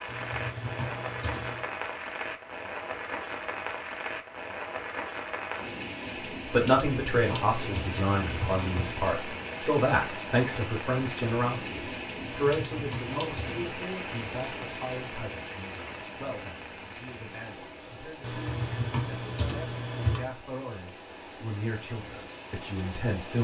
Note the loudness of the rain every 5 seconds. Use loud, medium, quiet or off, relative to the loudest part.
loud, loud, loud, medium, medium.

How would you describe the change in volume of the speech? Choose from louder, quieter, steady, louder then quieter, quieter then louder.
quieter then louder.